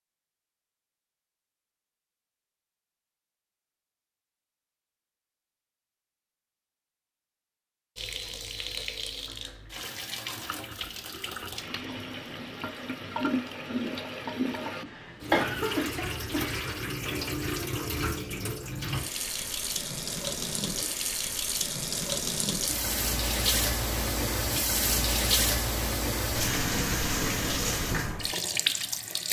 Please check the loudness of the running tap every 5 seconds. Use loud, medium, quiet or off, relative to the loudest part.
off, medium, medium, medium, loud, loud.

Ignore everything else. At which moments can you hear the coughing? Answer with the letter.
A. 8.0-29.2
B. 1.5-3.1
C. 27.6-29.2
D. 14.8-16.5
D.